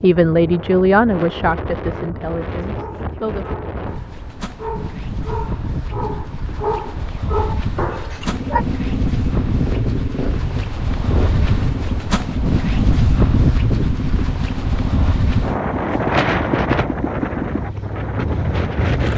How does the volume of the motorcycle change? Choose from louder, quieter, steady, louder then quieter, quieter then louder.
steady.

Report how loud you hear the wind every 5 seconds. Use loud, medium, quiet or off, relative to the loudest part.
medium, medium, loud, loud.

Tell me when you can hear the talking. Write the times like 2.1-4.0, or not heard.
0.0-3.5.